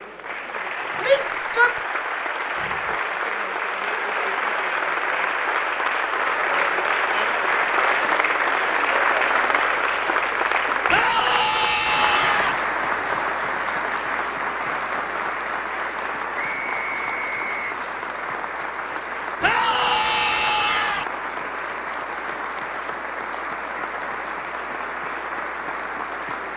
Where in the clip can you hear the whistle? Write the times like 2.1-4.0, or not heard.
0.9-2.3, 16.4-17.8.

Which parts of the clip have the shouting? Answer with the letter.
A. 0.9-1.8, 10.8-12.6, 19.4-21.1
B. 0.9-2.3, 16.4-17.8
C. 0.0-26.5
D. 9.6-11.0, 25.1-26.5
A.